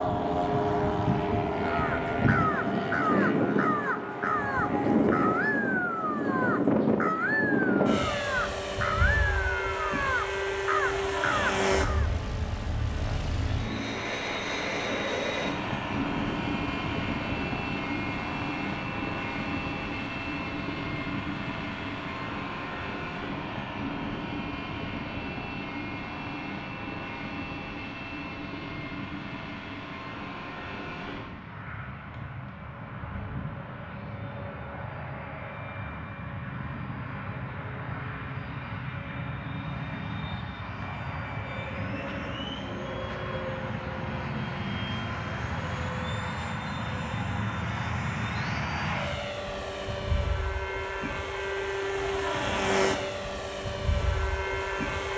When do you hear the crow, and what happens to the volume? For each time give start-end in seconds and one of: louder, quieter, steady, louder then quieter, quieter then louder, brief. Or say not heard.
1.7-12.1 steady.